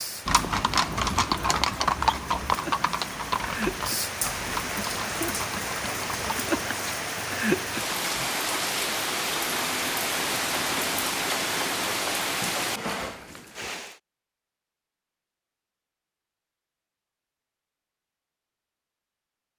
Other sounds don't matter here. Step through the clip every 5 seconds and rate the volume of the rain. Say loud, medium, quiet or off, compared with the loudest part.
medium, loud, loud, off.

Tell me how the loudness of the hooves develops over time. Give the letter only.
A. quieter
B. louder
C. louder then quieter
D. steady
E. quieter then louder
A.